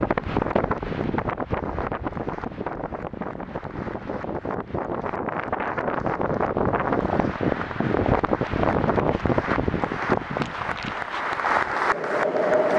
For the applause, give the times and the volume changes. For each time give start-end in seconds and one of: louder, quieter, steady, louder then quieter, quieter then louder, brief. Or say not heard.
0.0-12.7 louder.